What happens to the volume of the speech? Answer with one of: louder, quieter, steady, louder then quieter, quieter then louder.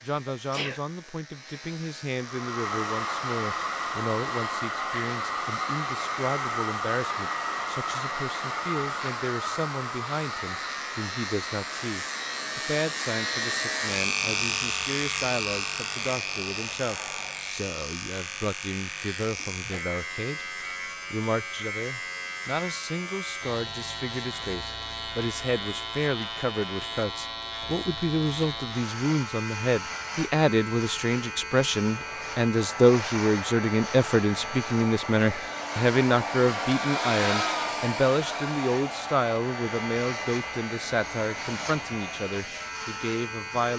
louder.